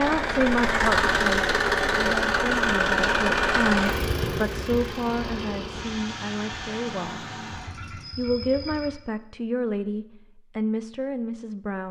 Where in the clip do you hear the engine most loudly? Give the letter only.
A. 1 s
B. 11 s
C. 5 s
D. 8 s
A.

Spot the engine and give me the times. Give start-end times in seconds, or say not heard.
0.0-8.9.